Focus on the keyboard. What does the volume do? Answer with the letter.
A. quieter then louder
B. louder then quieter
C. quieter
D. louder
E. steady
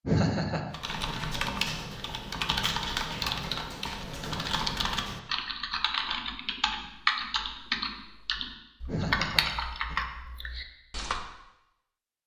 E.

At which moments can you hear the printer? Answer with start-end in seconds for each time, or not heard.
not heard.